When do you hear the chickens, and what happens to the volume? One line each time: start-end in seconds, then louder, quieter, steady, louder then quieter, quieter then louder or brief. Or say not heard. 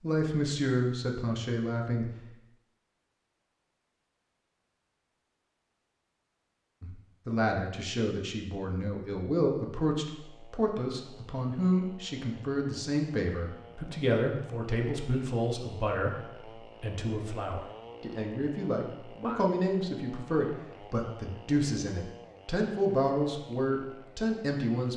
not heard.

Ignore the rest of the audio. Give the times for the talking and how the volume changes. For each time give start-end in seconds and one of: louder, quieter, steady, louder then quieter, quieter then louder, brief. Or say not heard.
0.0-2.1 brief
6.8-24.9 steady.